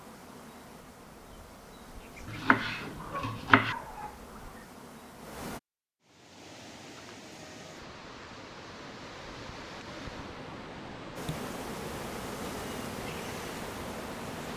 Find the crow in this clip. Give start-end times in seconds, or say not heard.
not heard.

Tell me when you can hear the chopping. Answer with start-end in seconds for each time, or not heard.
2.2-3.8.